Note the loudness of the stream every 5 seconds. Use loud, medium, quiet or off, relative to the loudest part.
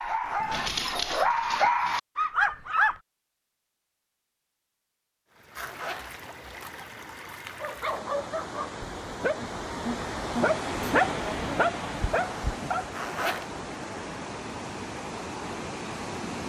off, medium, loud, loud.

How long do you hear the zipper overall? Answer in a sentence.
The zipper can be heard for 3 seconds in total.